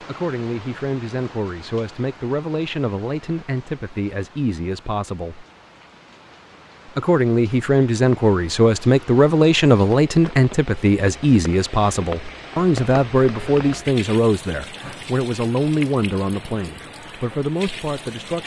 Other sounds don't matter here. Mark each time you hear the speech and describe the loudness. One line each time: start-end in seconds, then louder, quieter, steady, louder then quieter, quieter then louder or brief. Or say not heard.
0.0-5.5 steady
7.0-18.4 quieter.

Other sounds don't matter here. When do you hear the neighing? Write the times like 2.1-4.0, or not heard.
not heard.